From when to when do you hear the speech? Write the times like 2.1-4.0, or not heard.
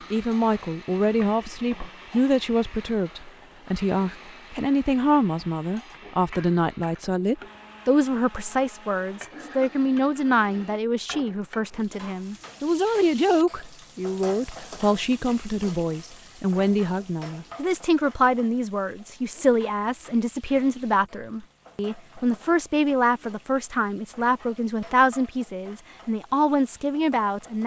0.1-27.6.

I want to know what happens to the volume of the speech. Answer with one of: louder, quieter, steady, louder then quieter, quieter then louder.
steady.